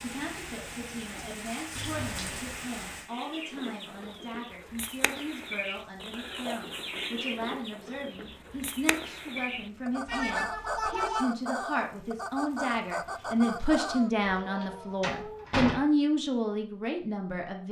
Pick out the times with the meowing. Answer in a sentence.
You can hear the meowing from 10.1 to 11.2 s.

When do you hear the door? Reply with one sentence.
The door can be heard from 1.8 to 2.5 s, from 13.2 to 13.7 s and from 14.2 to 15.8 s.